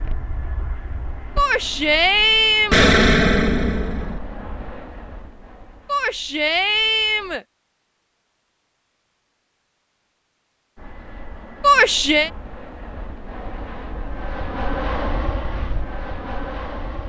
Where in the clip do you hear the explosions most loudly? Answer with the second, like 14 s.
3 s.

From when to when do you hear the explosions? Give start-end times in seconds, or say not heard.
2.7-4.2.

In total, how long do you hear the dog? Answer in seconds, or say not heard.
not heard.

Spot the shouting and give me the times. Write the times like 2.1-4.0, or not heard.
1.4-2.9, 5.8-7.5, 11.6-12.3.